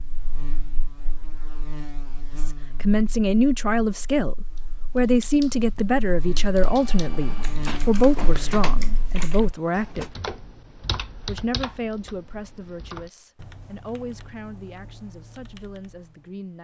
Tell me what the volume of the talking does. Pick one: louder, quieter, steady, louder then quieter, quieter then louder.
quieter.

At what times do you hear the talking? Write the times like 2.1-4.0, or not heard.
2.5-10.1, 11.2-16.5.